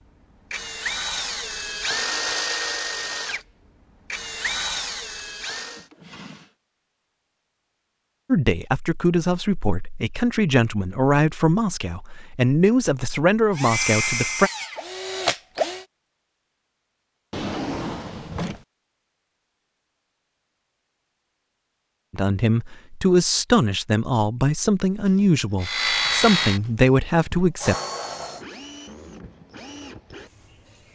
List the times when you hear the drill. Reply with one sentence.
The drill can be heard from 0.0 to 5.9 s, from 13.6 to 15.8 s and from 25.6 to 30.9 s.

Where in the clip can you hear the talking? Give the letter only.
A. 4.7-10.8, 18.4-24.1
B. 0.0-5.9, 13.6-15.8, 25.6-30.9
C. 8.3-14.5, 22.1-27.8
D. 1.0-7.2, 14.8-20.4
C.